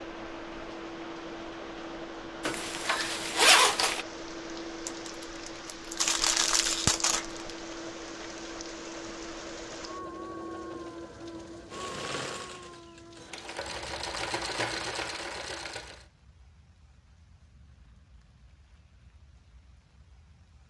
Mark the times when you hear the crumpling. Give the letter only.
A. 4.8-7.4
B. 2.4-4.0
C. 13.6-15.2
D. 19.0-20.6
A.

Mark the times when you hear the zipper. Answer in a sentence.
You can hear the zipper from 2.4 to 4.0 s.